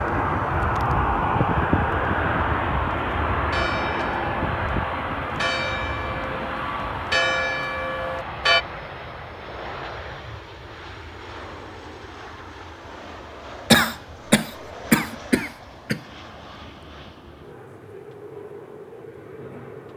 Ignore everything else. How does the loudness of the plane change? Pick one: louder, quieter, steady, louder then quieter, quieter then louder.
quieter.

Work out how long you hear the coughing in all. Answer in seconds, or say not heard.
2 s.